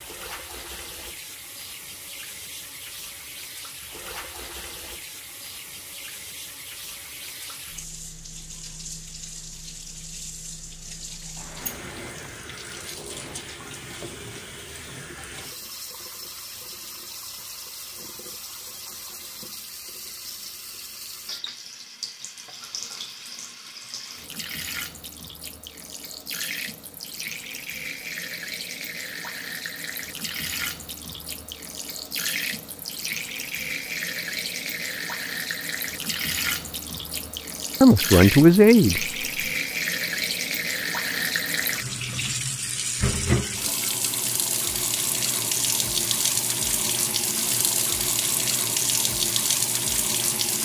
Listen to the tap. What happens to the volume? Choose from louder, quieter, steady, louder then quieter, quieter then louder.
louder.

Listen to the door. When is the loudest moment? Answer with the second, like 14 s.
12 s.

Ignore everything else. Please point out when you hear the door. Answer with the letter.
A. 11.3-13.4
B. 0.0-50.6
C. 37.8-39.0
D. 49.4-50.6
A.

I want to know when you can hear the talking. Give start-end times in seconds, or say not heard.
37.8-39.0.